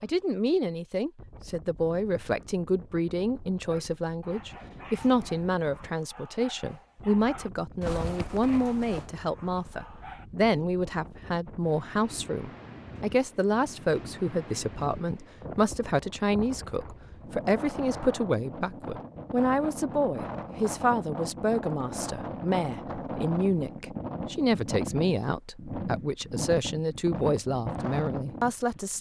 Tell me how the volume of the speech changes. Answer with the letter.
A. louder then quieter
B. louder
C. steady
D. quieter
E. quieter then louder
C.